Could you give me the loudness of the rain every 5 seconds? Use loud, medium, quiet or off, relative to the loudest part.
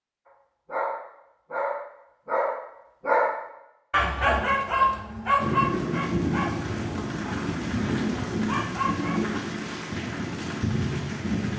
off, loud, loud.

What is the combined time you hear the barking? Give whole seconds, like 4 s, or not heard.
9 s.